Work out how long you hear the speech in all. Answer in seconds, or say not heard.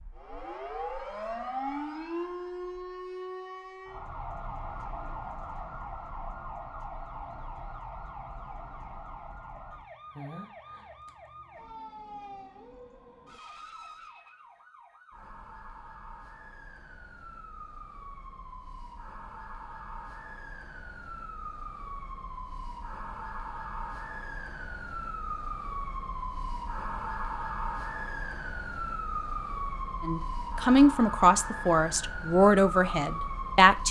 4 s.